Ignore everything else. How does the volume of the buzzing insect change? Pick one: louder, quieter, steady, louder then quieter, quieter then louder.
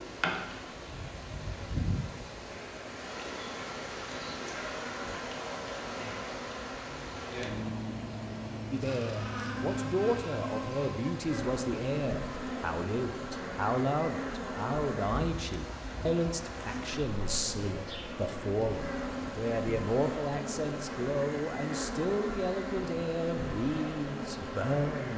steady.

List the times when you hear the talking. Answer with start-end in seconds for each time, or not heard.
8.7-25.1.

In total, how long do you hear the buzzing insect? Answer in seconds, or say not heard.
25 s.